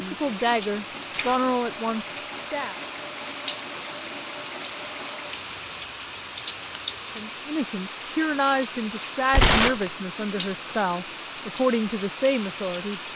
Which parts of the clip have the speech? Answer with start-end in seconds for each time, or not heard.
0.0-2.8, 7.2-13.0.